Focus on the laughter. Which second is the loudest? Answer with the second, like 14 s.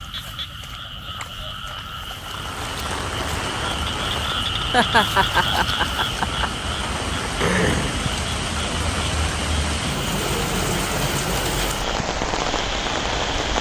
5 s.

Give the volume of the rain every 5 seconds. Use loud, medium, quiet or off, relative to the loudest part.
medium, loud, loud.